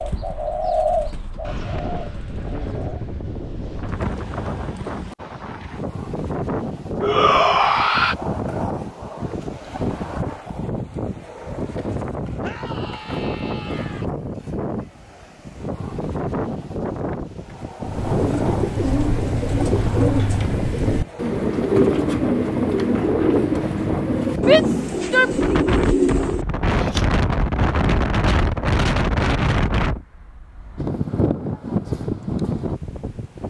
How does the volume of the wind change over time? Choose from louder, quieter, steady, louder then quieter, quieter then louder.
louder.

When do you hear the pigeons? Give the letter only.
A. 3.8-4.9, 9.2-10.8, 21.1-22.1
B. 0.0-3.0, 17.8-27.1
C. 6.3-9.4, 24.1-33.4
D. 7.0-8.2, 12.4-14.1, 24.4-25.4
B.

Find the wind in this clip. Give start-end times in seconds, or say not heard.
0.0-33.4.